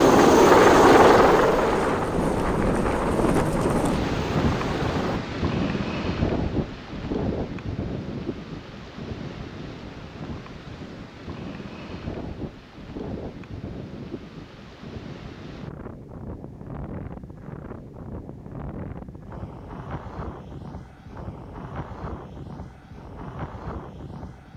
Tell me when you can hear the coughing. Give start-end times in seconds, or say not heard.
not heard.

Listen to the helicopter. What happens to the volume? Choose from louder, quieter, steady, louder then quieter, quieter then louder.
quieter.